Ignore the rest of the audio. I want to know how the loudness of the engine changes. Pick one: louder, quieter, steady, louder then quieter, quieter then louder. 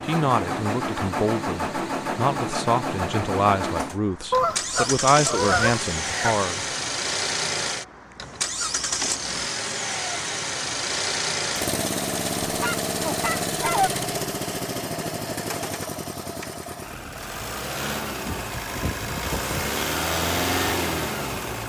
steady.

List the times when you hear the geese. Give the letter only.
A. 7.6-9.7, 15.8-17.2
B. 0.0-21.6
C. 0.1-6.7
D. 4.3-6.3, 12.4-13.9
D.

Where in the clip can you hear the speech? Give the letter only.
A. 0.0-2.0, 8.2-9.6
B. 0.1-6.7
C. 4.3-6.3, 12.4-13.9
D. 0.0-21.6
B.